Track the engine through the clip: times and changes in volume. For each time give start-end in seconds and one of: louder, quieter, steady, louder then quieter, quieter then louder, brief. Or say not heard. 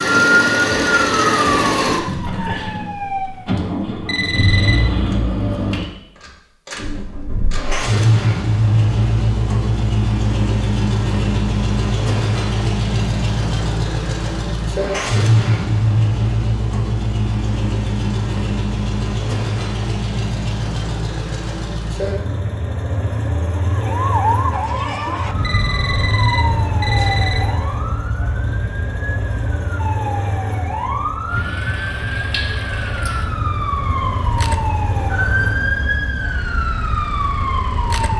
0.0-38.1 quieter.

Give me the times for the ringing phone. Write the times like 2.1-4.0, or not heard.
4.0-4.8, 25.4-27.4.